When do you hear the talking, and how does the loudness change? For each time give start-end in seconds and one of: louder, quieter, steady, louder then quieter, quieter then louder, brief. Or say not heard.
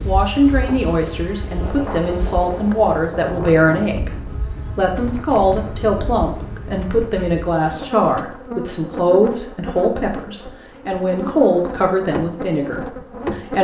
0.1-13.5 steady.